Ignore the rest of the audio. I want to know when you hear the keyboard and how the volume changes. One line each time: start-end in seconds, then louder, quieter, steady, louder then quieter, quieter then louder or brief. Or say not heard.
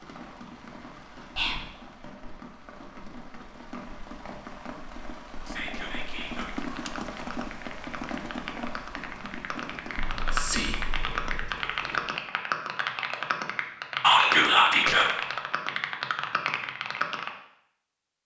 6.5-17.3 louder.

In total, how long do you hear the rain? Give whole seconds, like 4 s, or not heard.
12 s.